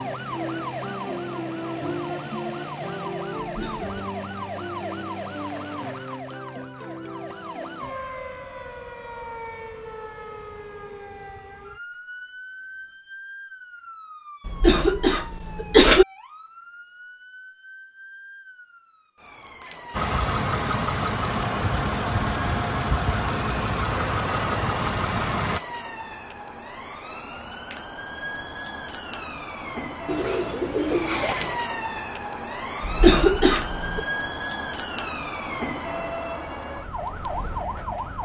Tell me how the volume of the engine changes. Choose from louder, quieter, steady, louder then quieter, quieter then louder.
steady.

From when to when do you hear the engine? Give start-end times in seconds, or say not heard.
19.9-25.6.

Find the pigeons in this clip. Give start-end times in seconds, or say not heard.
30.1-31.6.